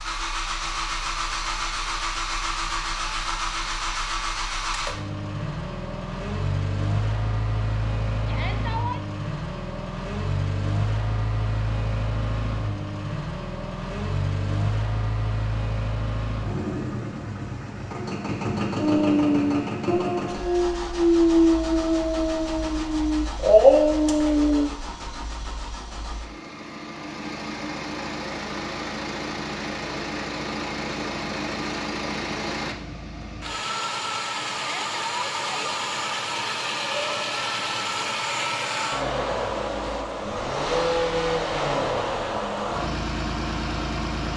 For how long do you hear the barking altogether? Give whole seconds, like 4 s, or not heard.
6 s.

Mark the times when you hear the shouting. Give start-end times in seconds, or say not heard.
8.2-9.0, 34.5-35.8.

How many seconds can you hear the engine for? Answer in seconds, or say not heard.
44 s.